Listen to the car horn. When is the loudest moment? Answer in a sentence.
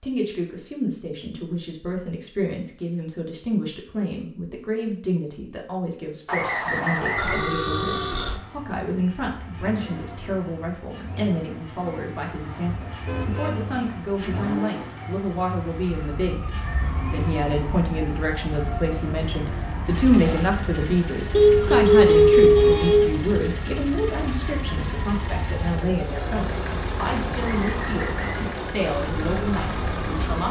The loudest moment of the car horn is at 22 seconds.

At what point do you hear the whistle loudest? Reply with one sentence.
The volume of the whistle peaks at 7 seconds.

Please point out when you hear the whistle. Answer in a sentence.
The whistle can be heard from 6.2 to 7.5 s and from 27.4 to 28.5 s.